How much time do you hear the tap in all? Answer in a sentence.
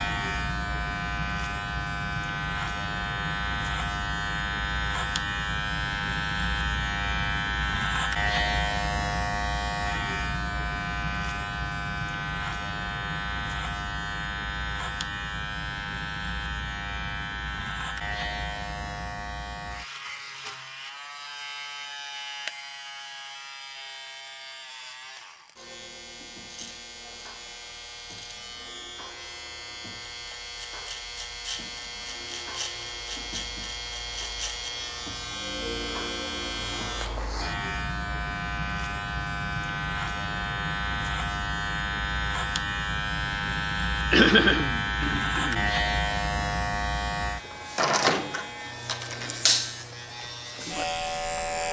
The tap can't be heard in this clip.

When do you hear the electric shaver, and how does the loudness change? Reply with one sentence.
You can hear the electric shaver from 0.0 to 51.6 s, getting quieter then louder.